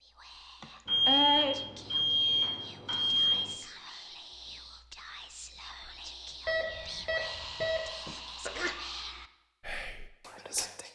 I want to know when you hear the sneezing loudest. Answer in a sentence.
The volume of the sneezing peaks at 1 second.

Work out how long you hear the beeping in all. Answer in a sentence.
You can hear the beeping for 4 seconds altogether.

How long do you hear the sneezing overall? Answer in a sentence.
You can hear the sneezing for 2 seconds altogether.